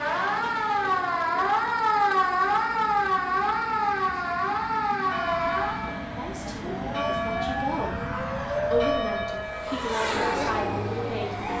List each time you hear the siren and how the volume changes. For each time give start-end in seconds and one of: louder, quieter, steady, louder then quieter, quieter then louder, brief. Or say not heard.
0.0-11.5 quieter.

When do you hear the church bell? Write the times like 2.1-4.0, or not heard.
5.0-11.5.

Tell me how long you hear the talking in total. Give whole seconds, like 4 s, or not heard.
5 s.